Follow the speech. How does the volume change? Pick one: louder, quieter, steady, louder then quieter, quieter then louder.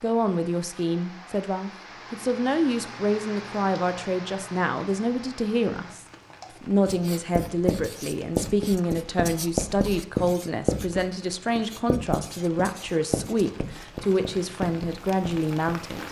steady.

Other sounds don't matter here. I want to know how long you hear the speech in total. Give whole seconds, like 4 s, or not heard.
16 s.